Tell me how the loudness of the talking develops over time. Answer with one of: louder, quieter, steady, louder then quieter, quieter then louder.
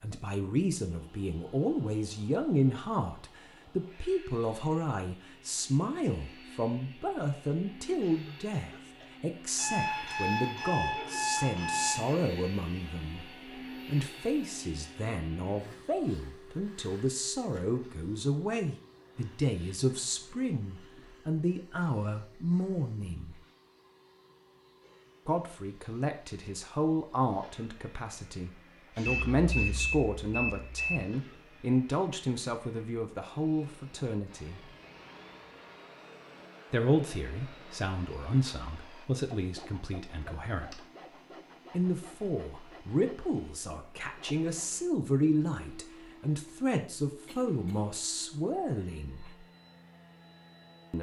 steady.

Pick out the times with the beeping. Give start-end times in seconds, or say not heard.
9.6-12.2, 29.1-31.1, 40.1-40.8.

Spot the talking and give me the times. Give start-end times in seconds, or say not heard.
0.0-13.2, 13.8-23.4, 25.2-34.6, 36.7-40.8, 41.7-49.3.